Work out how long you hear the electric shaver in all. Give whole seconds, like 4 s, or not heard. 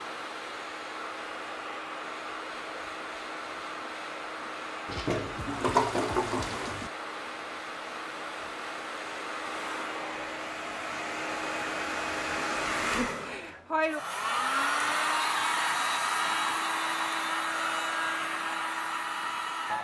not heard.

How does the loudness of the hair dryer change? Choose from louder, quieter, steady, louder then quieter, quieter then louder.
louder.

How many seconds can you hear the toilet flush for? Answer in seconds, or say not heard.
2 s.